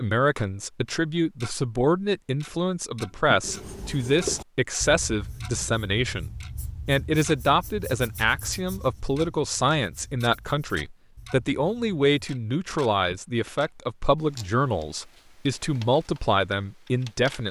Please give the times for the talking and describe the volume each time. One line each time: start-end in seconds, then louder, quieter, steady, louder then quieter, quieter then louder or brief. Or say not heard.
0.0-17.4 steady.